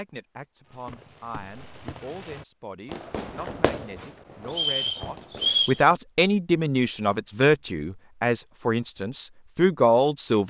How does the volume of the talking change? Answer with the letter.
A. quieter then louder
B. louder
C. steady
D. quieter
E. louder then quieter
B.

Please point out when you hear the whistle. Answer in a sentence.
You can hear the whistle from 4.5 to 5.8 s.